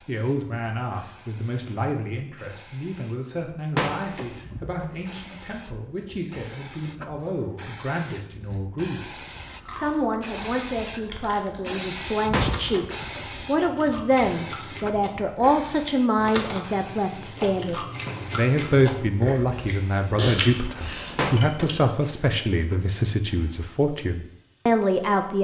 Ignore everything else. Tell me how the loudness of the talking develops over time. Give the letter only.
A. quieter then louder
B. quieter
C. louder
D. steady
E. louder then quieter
C.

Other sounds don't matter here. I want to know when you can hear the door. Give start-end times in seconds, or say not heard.
3.5-5.2, 12.3-12.9, 21.1-21.8.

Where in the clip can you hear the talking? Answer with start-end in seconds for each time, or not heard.
0.1-25.3.